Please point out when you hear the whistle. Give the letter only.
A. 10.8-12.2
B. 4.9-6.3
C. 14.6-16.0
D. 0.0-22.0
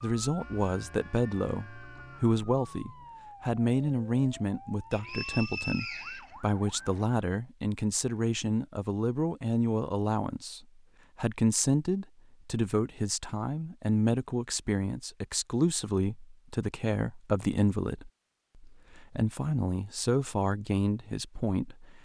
B.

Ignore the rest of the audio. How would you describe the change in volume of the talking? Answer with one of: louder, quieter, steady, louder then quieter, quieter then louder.
steady.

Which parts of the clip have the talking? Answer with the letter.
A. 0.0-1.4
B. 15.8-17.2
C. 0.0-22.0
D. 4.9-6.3
C.